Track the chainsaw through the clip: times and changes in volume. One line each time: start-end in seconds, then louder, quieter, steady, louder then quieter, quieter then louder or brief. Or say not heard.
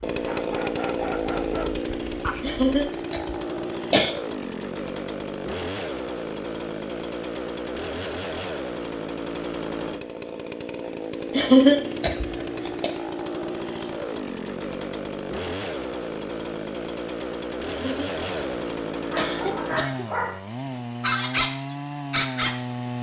0.0-22.9 steady.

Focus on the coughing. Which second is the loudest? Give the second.
12 s.